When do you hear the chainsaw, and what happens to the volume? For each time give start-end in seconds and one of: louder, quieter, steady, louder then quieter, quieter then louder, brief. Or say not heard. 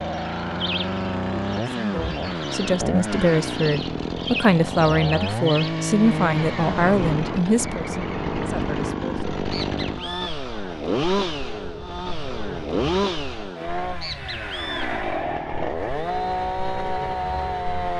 0.0-17.9 steady.